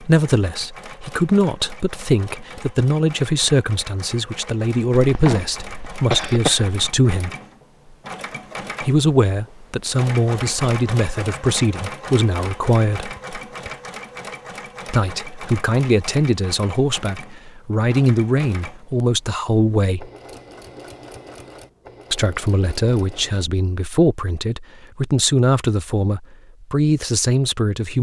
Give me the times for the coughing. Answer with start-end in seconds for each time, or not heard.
5.0-6.8.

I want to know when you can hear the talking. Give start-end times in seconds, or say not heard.
0.0-7.3, 8.8-13.2, 14.8-20.1, 22.1-27.9.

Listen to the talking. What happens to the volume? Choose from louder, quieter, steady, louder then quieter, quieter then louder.
steady.